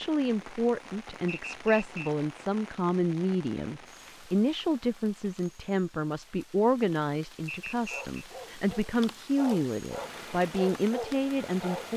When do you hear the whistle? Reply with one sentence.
The whistle can be heard from 1.2 to 2.1 s and from 7.5 to 8.2 s.